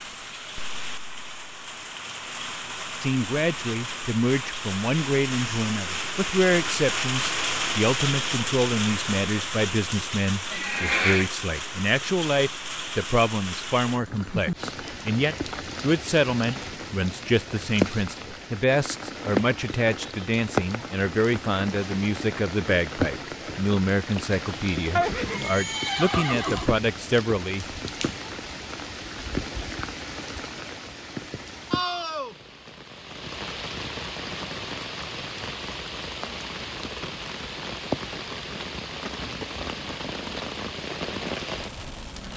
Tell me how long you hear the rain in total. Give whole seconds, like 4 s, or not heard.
42 s.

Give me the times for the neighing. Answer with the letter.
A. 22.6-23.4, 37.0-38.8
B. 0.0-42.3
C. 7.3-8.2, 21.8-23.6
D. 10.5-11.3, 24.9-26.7
D.